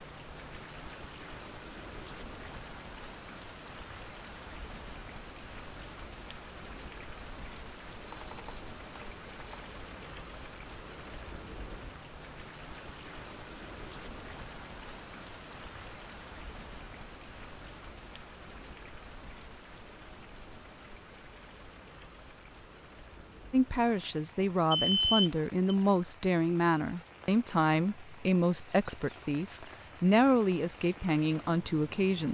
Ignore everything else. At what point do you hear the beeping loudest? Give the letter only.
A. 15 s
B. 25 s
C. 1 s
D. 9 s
B.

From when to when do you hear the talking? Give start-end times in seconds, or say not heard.
23.5-32.2.